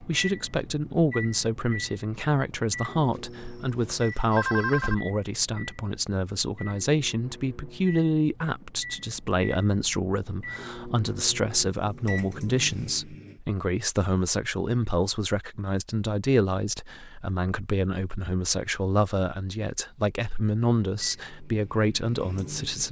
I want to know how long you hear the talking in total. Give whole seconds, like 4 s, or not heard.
23 s.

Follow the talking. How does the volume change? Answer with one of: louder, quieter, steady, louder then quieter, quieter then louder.
steady.